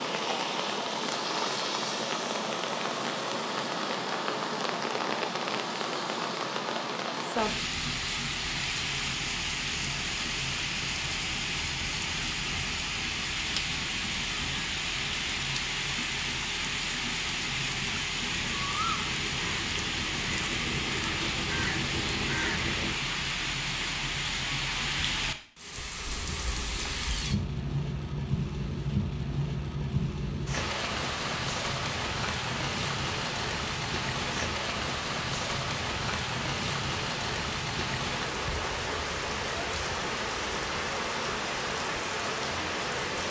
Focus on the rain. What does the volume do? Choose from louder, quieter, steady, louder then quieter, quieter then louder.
steady.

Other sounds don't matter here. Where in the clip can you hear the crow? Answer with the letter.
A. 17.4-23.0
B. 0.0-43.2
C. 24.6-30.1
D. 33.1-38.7
A.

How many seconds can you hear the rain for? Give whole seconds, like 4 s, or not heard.
43 s.